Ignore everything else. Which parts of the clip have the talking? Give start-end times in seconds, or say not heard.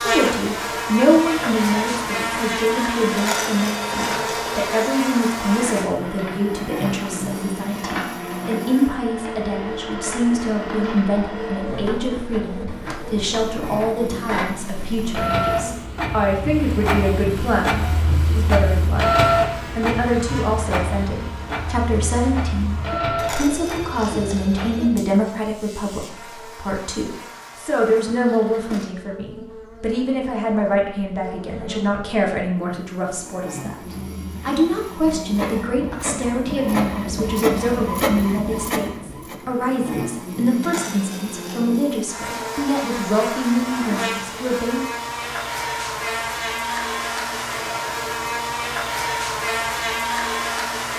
0.0-44.9.